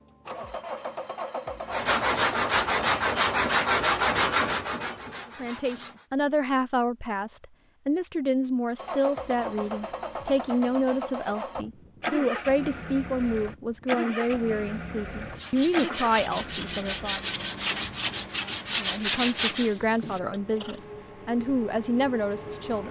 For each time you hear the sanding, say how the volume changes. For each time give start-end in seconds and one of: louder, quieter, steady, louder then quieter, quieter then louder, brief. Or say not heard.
1.7-6.0 quieter
15.3-20.8 louder then quieter.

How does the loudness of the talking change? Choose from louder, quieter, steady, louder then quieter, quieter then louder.
steady.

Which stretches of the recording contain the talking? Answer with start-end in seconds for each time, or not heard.
5.4-17.2, 18.7-22.8.